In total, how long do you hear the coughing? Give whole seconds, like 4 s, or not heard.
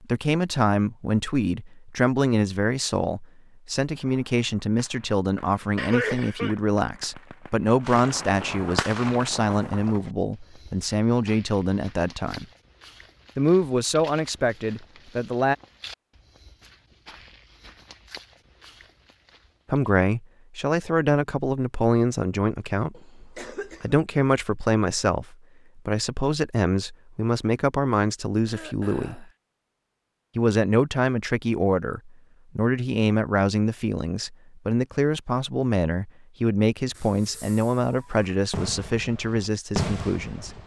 3 s.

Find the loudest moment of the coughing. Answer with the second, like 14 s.
6 s.